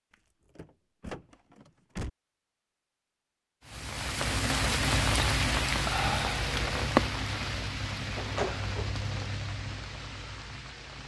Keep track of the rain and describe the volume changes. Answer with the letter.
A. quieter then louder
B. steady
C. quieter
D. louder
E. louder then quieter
C.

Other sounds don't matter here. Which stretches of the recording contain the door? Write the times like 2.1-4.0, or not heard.
0.1-2.1, 8.2-9.1.